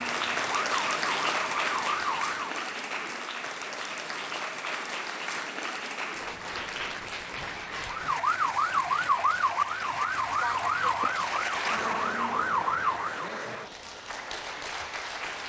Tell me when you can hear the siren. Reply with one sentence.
The siren can be heard from 0.0 to 2.6 s and from 7.8 to 13.3 s.